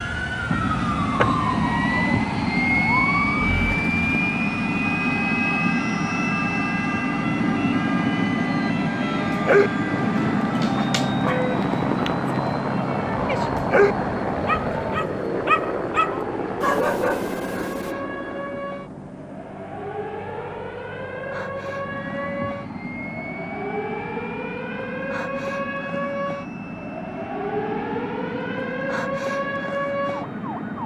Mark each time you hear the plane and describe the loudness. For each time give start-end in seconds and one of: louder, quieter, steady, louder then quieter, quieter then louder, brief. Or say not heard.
0.0-30.8 quieter.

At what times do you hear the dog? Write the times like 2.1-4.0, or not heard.
9.4-17.9.